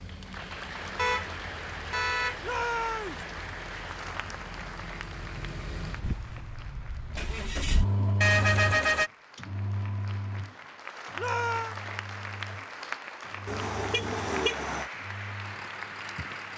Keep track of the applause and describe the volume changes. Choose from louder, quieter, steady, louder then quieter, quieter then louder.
quieter then louder.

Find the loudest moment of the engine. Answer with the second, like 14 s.
8 s.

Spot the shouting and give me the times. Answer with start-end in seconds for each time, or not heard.
2.4-3.2, 11.2-11.8.